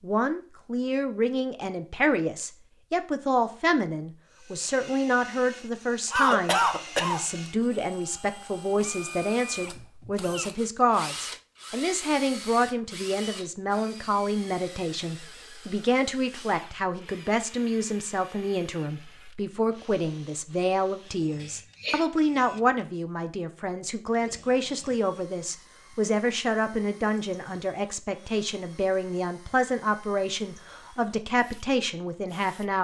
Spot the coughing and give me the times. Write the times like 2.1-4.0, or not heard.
6.1-7.2, 21.4-22.1.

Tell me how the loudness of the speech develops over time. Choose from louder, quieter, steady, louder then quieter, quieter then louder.
steady.